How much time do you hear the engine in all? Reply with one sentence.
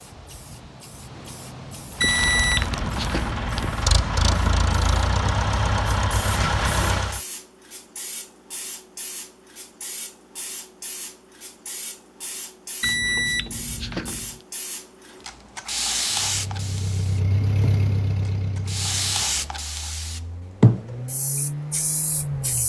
The engine can be heard for 12 seconds in total.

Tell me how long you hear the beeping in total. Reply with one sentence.
You can hear the beeping for 3 seconds altogether.